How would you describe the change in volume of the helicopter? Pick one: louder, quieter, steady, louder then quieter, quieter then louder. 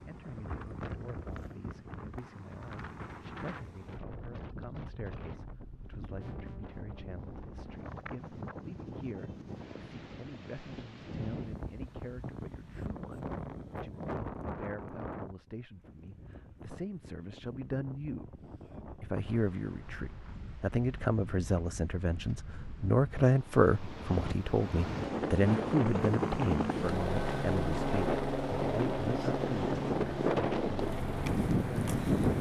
quieter.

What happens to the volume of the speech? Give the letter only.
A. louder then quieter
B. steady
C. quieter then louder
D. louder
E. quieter
D.